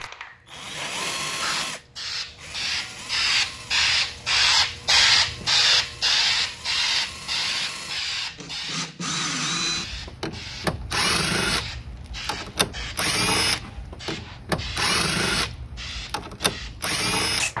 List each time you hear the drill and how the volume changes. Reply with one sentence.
The drill can be heard from 0.0 to 17.5 s, getting quieter then louder.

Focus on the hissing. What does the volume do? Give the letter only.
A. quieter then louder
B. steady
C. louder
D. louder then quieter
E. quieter
D.